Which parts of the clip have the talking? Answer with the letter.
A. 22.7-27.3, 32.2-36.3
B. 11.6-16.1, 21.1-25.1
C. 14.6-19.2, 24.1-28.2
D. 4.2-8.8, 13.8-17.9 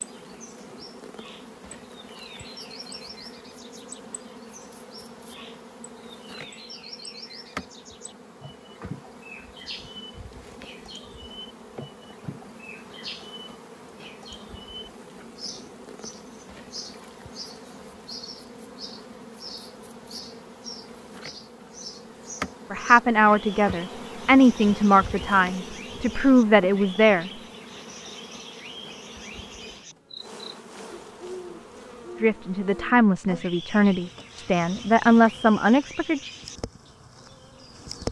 A.